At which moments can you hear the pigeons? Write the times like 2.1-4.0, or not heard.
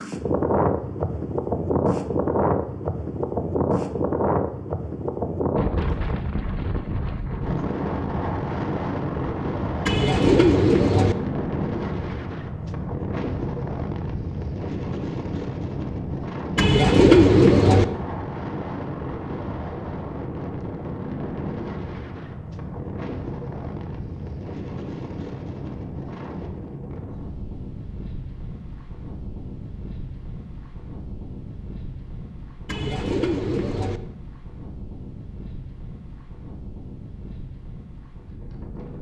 9.8-11.2, 16.6-17.9, 32.6-34.0.